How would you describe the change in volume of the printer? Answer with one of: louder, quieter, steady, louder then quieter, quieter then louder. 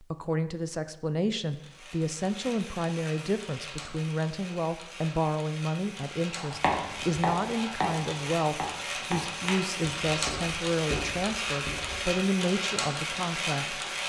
louder.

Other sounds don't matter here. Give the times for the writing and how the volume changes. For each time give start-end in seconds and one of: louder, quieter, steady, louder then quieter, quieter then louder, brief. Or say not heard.
6.3-12.1 quieter.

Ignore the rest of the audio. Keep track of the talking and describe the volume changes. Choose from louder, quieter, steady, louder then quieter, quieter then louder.
steady.